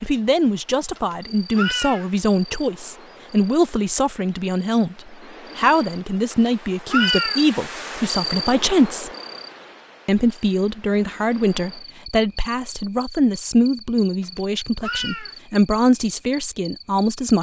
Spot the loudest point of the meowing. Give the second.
7 s.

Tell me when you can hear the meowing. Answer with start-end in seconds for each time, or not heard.
0.9-2.1, 6.3-7.4, 14.2-15.3.